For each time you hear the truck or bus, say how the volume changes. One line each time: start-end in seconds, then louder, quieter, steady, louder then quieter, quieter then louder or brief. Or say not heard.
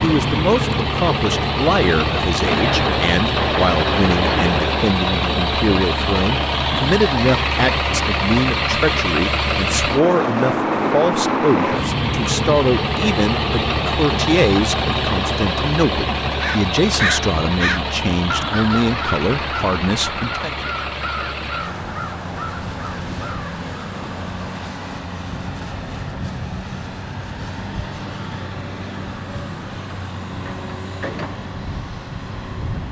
0.0-32.8 quieter.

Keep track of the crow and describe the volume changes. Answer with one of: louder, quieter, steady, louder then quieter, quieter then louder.
quieter.